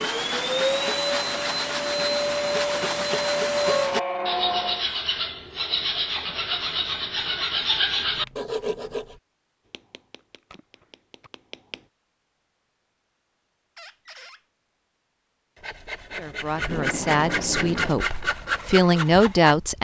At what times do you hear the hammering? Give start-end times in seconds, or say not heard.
9.7-11.8.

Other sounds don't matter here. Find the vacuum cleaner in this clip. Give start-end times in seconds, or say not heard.
0.0-3.9.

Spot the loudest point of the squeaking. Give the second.
4 s.